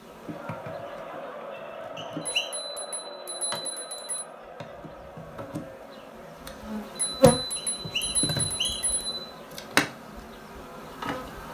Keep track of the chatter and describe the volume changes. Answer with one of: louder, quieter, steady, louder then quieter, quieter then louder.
quieter.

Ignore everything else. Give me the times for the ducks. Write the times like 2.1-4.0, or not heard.
not heard.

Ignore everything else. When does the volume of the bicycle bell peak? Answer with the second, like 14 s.
8 s.